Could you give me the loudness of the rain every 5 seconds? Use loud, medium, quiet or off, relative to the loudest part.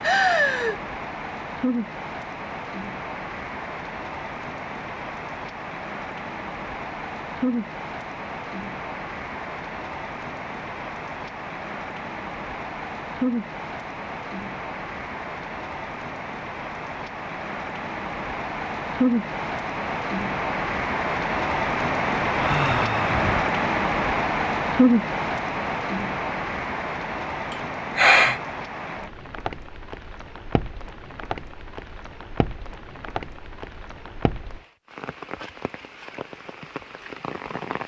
medium, medium, medium, medium, loud, medium, quiet, quiet.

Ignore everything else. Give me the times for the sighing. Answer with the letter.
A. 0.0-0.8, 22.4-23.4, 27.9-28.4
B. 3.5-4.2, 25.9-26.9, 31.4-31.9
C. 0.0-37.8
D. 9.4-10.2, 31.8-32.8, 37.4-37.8
A.